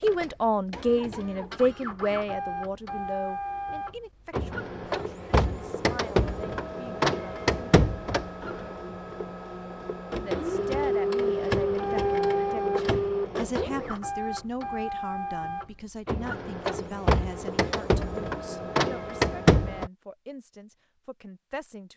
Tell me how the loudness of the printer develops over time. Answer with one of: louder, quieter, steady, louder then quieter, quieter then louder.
louder.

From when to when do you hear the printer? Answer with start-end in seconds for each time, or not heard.
0.0-19.9.